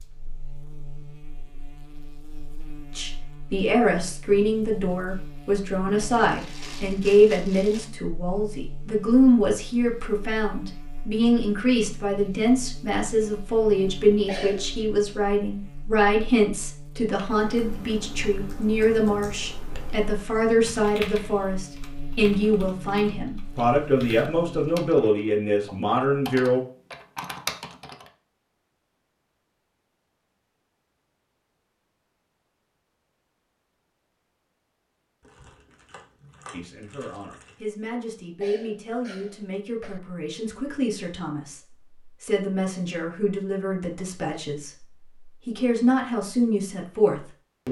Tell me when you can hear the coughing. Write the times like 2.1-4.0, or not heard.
14.2-14.8, 38.4-40.0.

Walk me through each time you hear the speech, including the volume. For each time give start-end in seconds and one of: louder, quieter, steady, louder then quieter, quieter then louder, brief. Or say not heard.
3.0-26.6 steady
36.5-47.6 louder.